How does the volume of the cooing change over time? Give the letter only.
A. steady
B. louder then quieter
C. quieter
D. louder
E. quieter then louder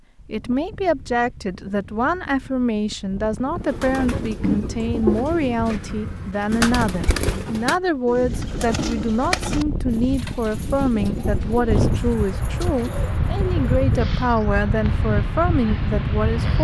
C.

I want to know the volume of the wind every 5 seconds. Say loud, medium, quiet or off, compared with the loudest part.
quiet, medium, loud, loud.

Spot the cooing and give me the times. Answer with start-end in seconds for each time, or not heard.
3.6-14.2.